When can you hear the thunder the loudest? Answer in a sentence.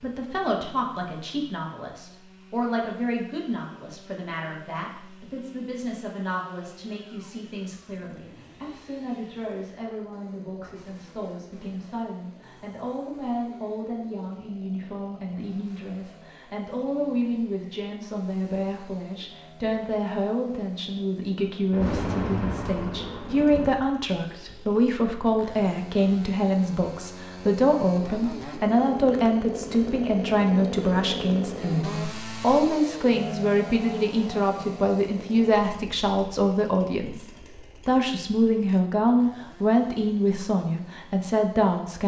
The volume of the thunder peaks at 22 seconds.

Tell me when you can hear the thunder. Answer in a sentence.
The thunder can be heard from 21.7 to 23.8 s.